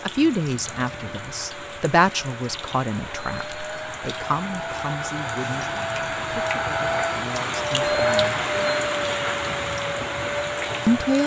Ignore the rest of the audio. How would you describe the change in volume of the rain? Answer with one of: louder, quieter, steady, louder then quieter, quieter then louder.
louder.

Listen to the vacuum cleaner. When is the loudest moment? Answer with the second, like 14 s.
8 s.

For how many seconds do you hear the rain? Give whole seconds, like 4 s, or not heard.
11 s.